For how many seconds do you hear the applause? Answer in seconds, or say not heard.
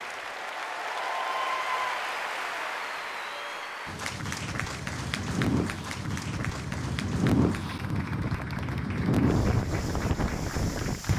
11 s.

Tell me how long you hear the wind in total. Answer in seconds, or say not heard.
7 s.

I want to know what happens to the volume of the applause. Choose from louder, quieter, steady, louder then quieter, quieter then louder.
quieter.